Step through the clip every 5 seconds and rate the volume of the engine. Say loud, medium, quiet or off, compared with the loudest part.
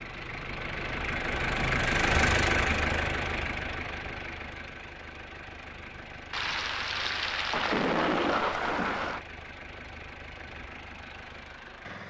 loud, quiet, quiet.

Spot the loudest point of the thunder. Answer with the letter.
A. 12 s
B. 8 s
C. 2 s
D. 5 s
B.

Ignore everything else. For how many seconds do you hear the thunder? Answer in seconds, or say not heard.
3 s.